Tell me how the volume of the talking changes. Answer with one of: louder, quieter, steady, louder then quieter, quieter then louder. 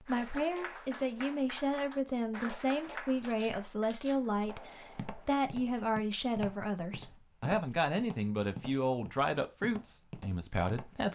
steady.